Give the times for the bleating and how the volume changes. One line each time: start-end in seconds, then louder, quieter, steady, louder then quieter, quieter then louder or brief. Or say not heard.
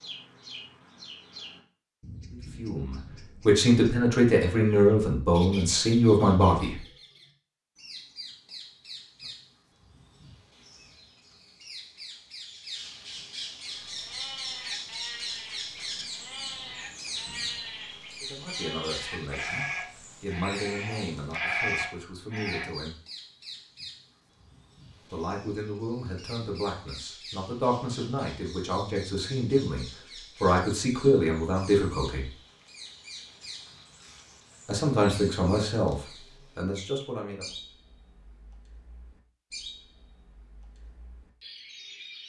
13.9-22.7 louder.